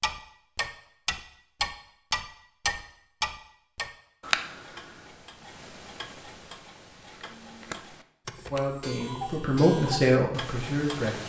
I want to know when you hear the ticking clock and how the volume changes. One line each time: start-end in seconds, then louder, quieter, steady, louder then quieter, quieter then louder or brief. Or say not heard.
0.0-11.2 quieter then louder.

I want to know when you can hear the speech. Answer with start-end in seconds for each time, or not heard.
8.5-11.2.